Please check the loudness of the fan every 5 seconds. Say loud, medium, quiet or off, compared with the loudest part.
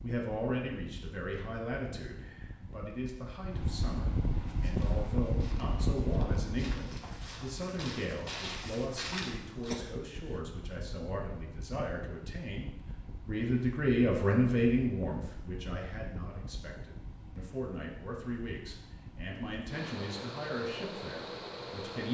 loud, loud, medium, medium, loud.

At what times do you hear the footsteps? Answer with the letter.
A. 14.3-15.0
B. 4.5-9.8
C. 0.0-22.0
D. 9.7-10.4
B.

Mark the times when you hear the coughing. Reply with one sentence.
You can hear the coughing from 9.7 to 10.4 s.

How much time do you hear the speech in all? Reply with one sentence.
You can hear the speech for 22 seconds altogether.